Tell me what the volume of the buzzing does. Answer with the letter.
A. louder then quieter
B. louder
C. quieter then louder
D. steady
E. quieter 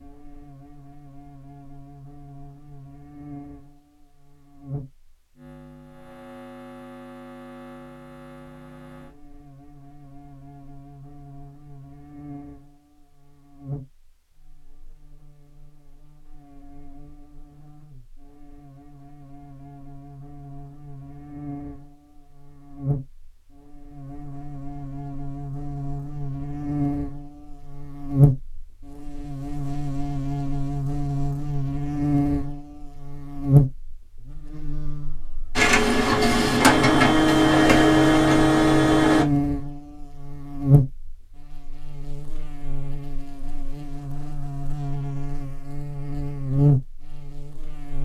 B.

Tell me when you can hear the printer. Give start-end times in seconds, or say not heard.
35.5-39.2.